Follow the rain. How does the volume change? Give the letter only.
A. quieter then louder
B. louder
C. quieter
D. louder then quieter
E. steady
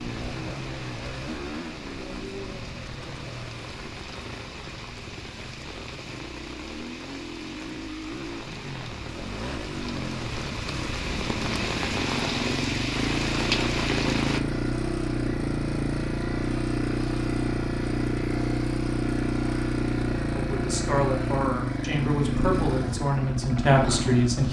B.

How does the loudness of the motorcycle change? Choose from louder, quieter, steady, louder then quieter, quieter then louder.
louder.